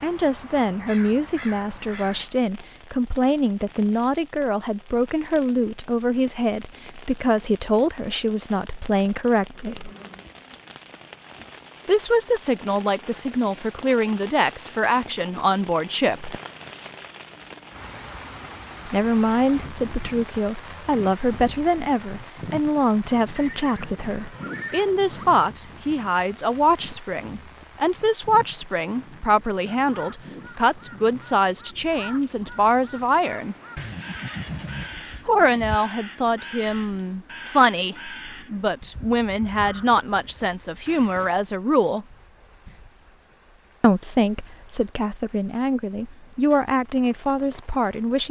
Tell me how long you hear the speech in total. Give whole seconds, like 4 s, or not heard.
40 s.